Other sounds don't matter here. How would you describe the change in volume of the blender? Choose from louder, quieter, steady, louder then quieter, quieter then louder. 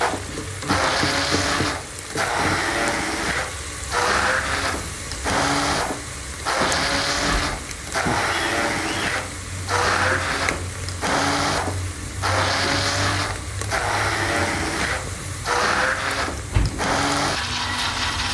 steady.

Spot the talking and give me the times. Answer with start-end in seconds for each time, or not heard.
not heard.